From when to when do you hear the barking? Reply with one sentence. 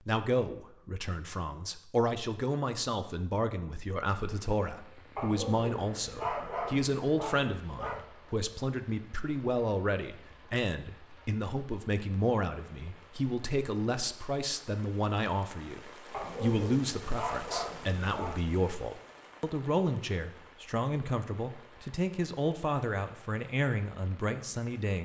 You can hear the barking from 5.2 to 8.1 s and from 16.1 to 18.4 s.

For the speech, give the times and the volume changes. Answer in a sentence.
You can hear the speech from 0.1 to 25.0 s, at a steady volume.